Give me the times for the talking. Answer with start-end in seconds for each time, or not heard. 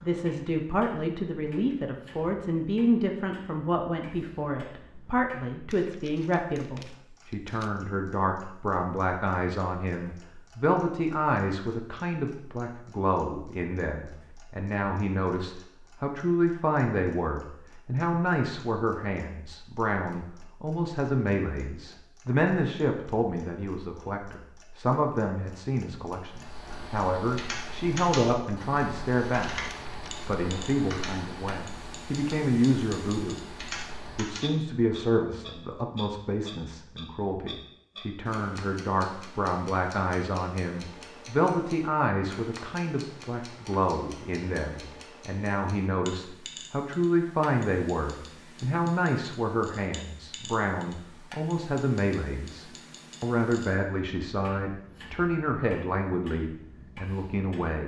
0.0-33.4, 34.1-57.8.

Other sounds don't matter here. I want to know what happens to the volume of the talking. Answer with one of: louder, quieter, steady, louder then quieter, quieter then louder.
steady.